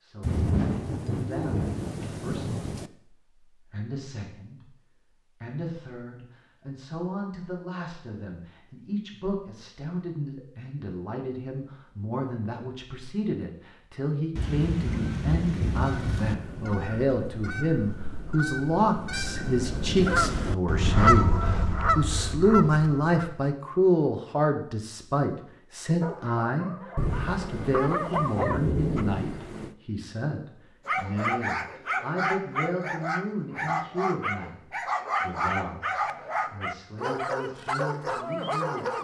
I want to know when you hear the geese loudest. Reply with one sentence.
The volume of the geese peaks at 21 seconds.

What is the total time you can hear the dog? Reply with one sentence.
The dog can be heard for 11 seconds in total.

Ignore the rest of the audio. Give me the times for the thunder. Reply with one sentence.
The thunder can be heard from 0.2 to 2.9 s, from 14.3 to 16.4 s and from 26.9 to 29.8 s.